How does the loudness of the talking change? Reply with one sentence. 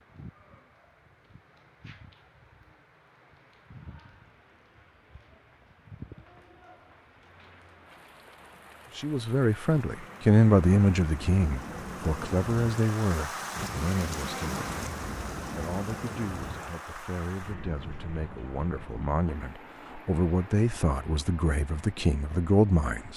The loudness of the talking goes down, then up.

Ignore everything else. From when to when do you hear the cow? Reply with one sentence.
The cow can't be heard in this clip.